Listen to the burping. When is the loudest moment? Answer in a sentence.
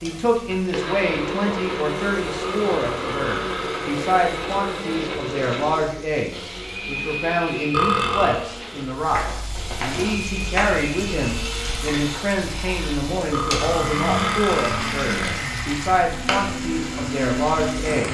The loudest moment of the burping is at 8 seconds.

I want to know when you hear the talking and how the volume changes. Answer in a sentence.
The talking can be heard from 0.0 to 18.0 s, at a steady volume.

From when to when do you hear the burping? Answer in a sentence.
You can hear the burping from 2.4 to 4.0 s, from 7.7 to 8.4 s and from 13.3 to 15.4 s.